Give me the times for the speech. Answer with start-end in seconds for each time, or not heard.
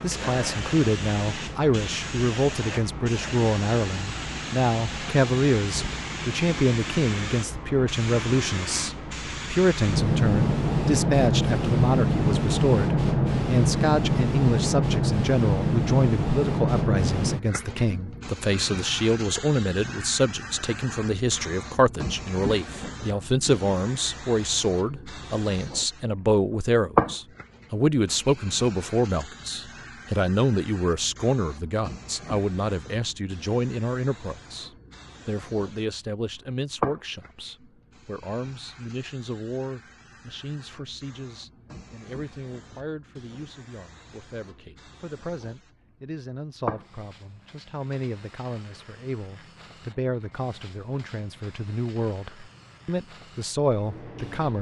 0.0-54.5.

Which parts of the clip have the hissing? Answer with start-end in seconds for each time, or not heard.
0.0-54.5.